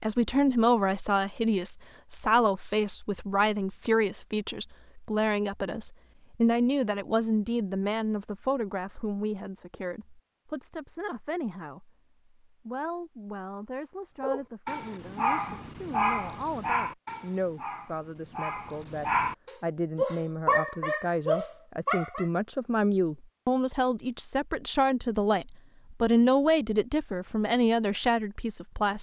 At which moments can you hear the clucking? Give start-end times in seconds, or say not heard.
not heard.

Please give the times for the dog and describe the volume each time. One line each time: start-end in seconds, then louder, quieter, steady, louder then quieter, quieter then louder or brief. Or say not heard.
14.2-22.2 quieter then louder.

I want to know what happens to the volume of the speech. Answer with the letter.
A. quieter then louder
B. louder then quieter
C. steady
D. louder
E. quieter
A.